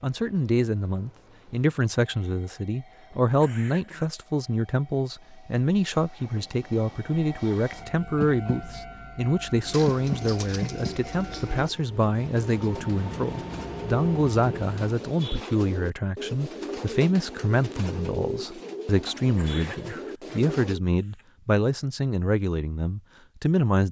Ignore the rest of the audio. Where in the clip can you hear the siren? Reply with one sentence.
The siren can't be heard in this clip.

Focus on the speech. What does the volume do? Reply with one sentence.
The volume of the speech stays about the same.